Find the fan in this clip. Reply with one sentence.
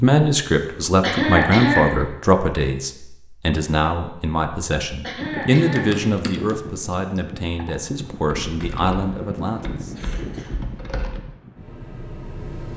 You can hear the fan from 5.2 to 12.7 s.